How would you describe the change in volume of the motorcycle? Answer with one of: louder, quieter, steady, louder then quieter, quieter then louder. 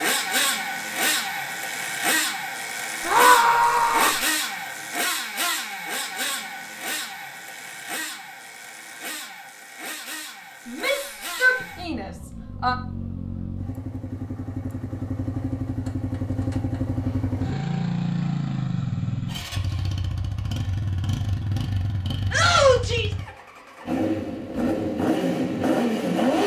quieter then louder.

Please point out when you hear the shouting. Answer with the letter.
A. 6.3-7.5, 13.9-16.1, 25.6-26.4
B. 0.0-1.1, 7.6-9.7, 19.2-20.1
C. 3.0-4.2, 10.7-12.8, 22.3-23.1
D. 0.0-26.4
C.